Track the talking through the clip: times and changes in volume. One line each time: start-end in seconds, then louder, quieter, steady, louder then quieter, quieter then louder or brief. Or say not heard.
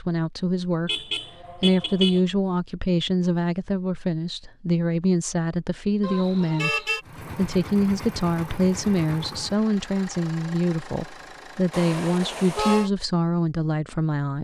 0.0-14.3 steady.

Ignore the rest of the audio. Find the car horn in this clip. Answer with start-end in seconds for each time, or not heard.
0.8-2.2, 6.0-7.0, 11.7-12.9.